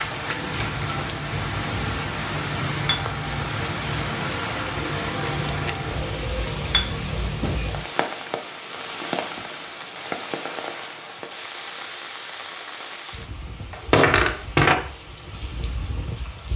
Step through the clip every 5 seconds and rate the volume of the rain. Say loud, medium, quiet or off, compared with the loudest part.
loud, loud, medium, medium.